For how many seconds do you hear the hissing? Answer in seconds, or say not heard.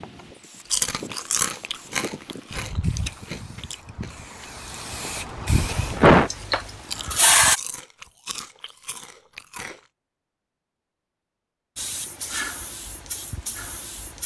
10 s.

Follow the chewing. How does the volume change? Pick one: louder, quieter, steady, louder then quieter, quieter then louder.
quieter.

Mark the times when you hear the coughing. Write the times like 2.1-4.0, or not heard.
5.5-6.3.